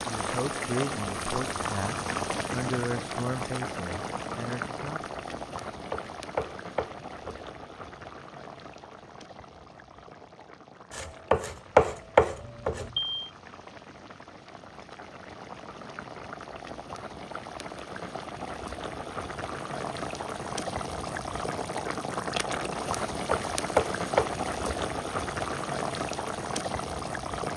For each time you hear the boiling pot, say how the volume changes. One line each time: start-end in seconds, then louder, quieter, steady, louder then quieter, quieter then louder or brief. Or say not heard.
0.0-27.5 quieter then louder.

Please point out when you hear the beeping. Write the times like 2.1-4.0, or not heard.
12.4-13.3.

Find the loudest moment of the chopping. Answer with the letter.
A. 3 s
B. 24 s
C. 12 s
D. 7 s
C.